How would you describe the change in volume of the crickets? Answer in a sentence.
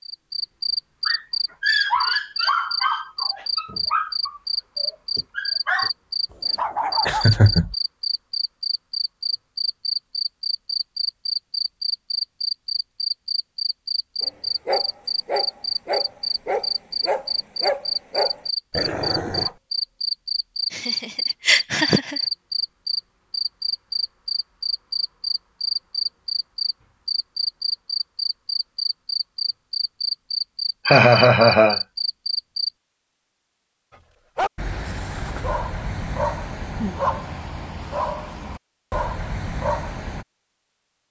The volume of the crickets stays about the same.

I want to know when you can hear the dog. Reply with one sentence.
The dog can be heard from 1.1 to 7.2 s, from 14.2 to 19.6 s and from 34.4 to 40.2 s.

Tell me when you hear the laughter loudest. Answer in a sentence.
The volume of the laughter peaks at 31 seconds.